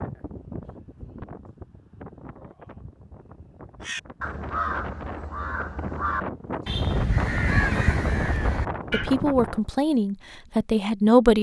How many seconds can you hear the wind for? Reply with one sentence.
You can hear the wind for 10 seconds altogether.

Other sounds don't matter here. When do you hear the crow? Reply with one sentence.
You can hear the crow from 3.8 to 9.2 s.